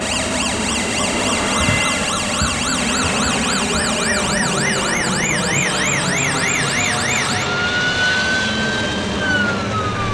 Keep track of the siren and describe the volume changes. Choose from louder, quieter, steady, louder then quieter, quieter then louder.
steady.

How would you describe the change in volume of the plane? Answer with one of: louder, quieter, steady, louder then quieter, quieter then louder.
steady.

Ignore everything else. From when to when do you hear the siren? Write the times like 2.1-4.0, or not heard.
0.0-10.0.